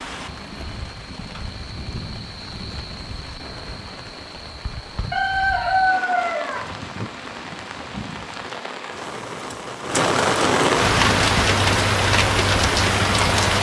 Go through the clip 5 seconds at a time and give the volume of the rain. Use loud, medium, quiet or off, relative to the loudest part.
quiet, quiet, loud.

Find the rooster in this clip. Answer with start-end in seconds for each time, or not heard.
5.1-6.7.